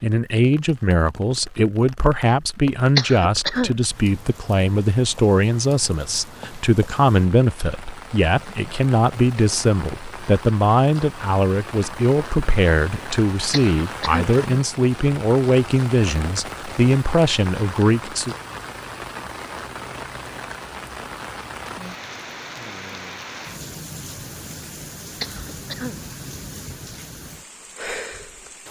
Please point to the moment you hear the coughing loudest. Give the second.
3 s.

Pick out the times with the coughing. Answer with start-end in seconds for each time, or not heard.
3.0-3.8, 13.5-14.2, 25.2-25.9.